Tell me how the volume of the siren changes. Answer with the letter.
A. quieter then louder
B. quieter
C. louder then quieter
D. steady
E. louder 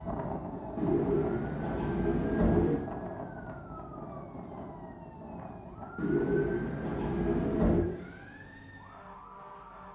B.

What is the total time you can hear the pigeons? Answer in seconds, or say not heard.
4 s.